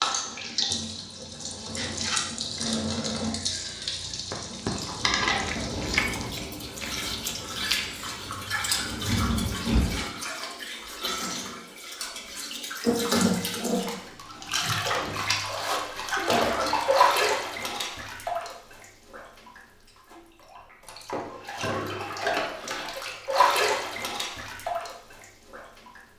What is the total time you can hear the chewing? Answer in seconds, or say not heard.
6 s.